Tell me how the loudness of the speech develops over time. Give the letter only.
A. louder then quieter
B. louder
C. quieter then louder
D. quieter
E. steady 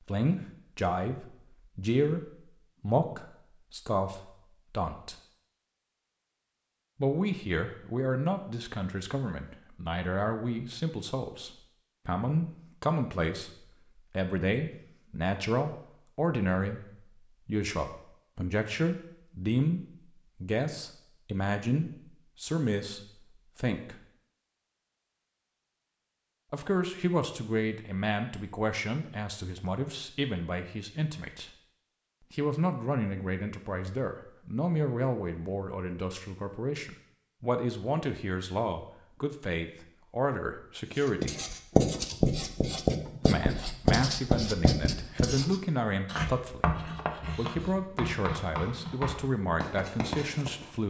E.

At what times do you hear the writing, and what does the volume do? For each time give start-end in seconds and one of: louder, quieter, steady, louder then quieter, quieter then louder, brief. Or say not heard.
41.0-50.7 quieter.